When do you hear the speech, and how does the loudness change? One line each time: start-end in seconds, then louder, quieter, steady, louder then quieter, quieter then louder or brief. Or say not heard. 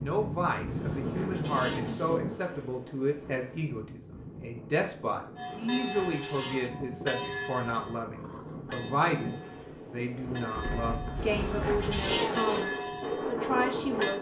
0.0-14.1 steady.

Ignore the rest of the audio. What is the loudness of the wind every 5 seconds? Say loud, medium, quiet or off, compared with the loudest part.
loud, medium, loud.